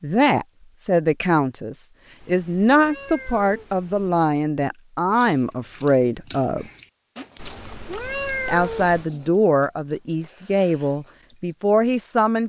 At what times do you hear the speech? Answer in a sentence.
The speech can be heard from 0.0 to 6.7 s and from 8.4 to 12.4 s.